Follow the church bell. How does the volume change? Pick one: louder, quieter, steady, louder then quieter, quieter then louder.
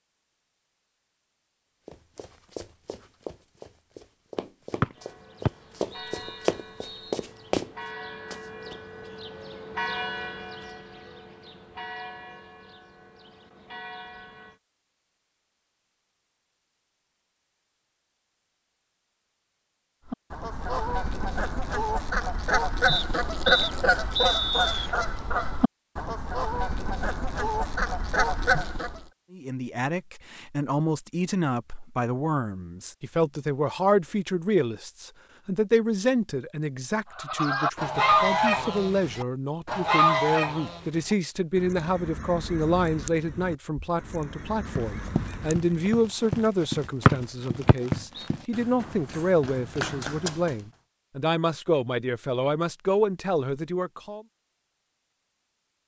louder then quieter.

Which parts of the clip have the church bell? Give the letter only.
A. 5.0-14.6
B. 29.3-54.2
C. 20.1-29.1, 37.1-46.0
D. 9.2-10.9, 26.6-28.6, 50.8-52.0
A.